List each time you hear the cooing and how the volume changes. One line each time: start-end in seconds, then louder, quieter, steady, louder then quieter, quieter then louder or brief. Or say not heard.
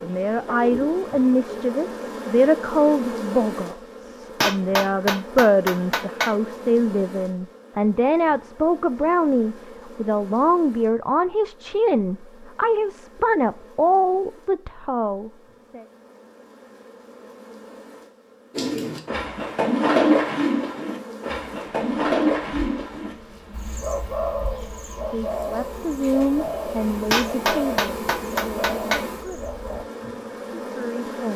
0.0-1.6 brief
18.6-29.9 quieter.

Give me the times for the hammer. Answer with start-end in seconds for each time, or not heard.
4.4-6.3, 27.1-29.1.